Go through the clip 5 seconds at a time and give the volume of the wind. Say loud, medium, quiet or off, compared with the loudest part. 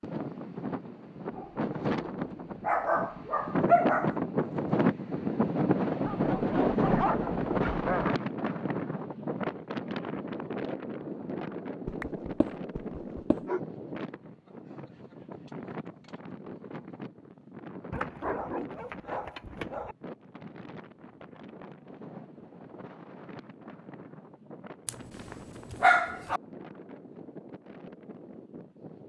loud, loud, medium, quiet, quiet, quiet.